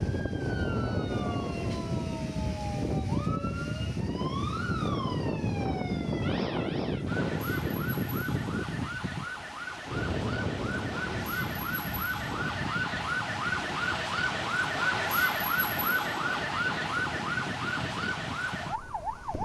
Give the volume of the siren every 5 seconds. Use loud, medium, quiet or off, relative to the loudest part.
medium, medium, loud, loud.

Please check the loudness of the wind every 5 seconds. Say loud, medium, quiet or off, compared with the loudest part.
loud, loud, medium, medium.